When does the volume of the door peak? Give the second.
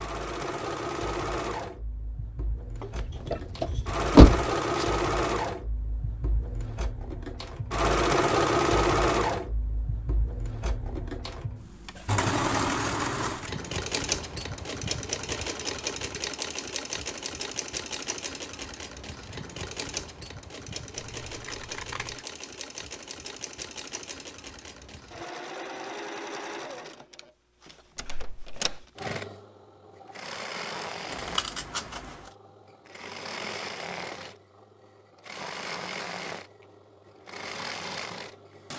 4 s.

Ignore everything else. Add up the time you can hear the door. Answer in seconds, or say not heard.
2 s.